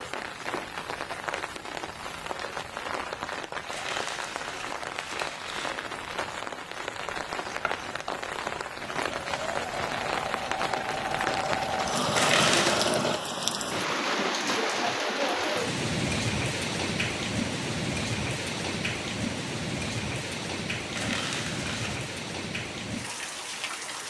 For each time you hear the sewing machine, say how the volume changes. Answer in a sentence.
You can hear the sewing machine from 7.5 to 13.2 s, getting louder.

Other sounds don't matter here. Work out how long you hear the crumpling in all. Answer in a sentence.
The crumpling can be heard for 4 seconds in total.